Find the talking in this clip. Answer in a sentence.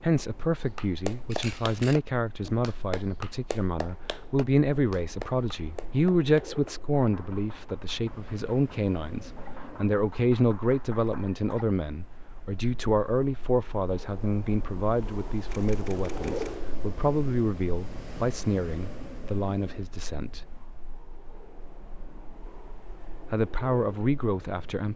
You can hear the talking from 0.0 to 20.4 s and from 23.3 to 24.9 s.